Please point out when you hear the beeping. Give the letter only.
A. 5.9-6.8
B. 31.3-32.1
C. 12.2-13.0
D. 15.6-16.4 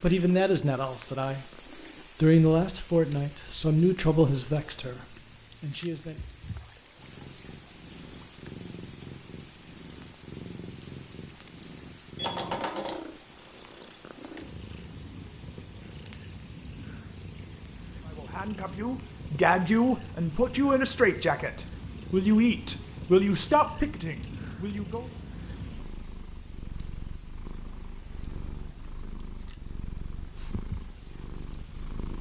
C.